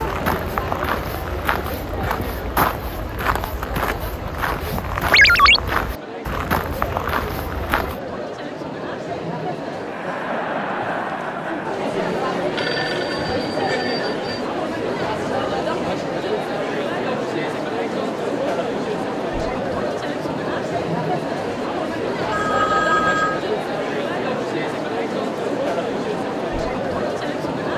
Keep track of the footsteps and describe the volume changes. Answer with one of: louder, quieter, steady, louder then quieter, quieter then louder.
steady.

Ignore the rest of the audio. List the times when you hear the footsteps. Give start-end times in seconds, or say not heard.
0.0-8.0.